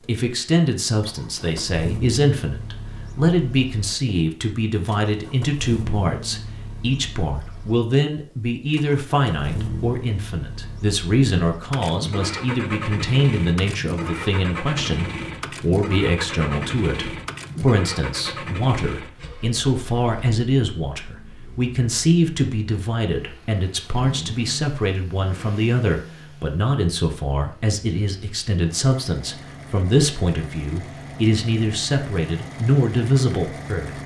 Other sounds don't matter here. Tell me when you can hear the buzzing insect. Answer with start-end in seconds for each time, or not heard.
not heard.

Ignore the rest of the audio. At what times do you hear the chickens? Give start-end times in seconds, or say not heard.
not heard.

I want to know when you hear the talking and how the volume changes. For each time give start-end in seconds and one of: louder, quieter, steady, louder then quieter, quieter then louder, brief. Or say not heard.
0.0-34.0 steady.